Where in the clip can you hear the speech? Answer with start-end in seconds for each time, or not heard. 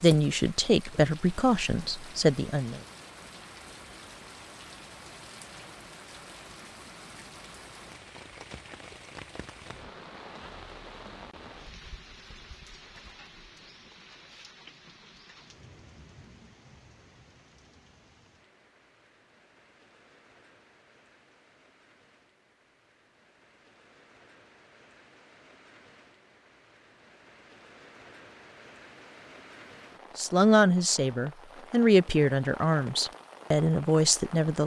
0.0-2.8, 30.1-34.6.